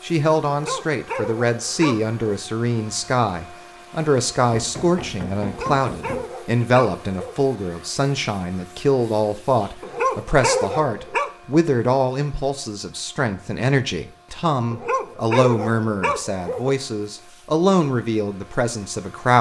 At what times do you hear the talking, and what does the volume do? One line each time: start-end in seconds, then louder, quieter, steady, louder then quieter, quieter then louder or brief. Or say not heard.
0.0-19.3 steady.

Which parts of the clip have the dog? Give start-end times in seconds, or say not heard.
0.5-2.1, 5.4-7.5, 9.8-11.3, 14.7-16.7.